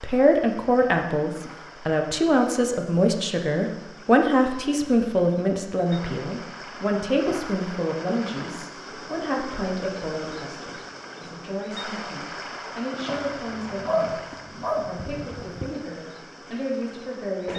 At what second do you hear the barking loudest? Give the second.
14 s.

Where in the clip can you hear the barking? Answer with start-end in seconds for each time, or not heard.
13.1-15.8.